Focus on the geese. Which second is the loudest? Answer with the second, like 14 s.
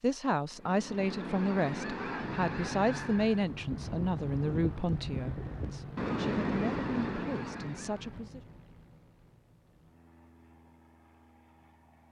6 s.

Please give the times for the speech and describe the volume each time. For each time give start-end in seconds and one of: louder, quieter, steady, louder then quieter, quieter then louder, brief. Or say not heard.
0.0-8.4 quieter.